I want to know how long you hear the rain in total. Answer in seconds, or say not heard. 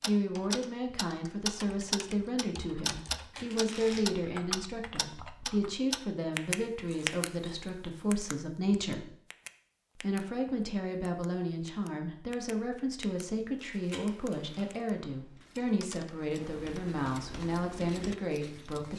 not heard.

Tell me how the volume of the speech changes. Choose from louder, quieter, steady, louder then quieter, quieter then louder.
steady.